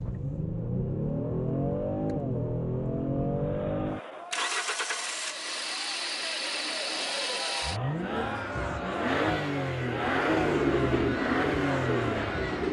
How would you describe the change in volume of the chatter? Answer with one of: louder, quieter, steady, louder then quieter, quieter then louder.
louder.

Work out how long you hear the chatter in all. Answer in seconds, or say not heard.
9 s.